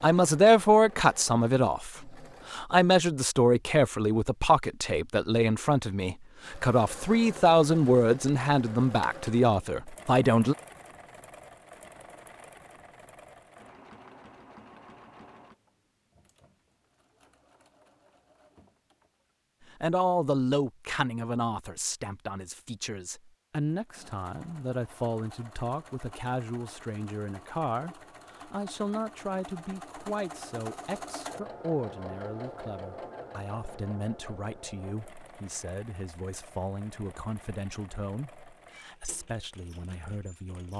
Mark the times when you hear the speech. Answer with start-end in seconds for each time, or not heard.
0.0-10.6, 19.8-40.7.